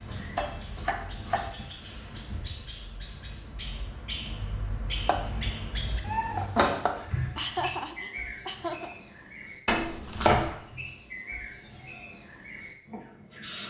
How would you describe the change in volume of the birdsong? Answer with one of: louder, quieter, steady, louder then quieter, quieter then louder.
louder then quieter.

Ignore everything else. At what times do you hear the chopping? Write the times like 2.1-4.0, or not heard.
0.3-1.5, 5.0-7.0, 9.7-10.5.